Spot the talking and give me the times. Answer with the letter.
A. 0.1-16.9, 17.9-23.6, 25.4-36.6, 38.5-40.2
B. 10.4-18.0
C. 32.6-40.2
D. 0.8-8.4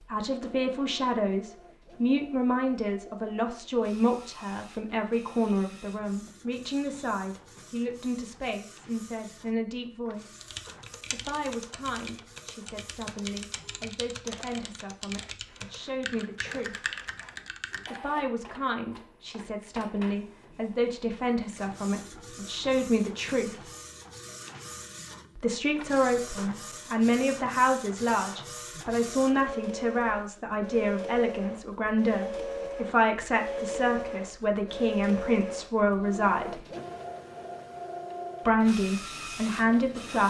A.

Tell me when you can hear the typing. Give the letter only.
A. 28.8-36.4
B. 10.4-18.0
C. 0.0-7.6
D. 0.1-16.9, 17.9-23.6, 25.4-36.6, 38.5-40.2
B.